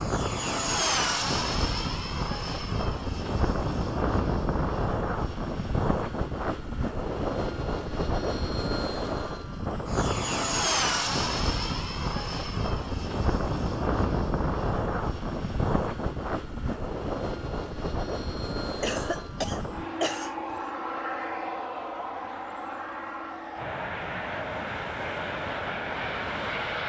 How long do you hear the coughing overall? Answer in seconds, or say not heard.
2 s.